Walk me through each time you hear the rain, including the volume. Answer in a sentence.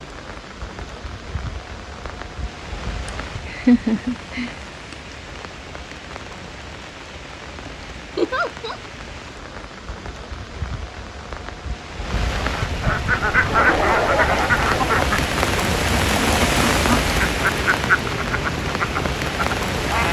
The rain can be heard from 0.0 to 20.0 s, getting louder.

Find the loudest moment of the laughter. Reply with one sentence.
The volume of the laughter peaks at 4 seconds.